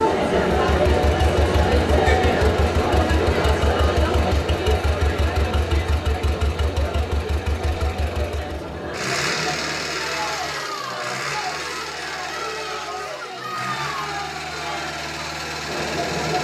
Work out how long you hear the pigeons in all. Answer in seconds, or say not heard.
not heard.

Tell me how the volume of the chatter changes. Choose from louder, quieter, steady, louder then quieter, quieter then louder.
quieter.